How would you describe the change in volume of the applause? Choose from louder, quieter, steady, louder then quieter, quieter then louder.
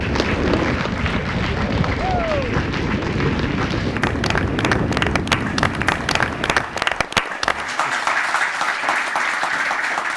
louder.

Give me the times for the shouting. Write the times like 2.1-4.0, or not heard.
1.9-2.5.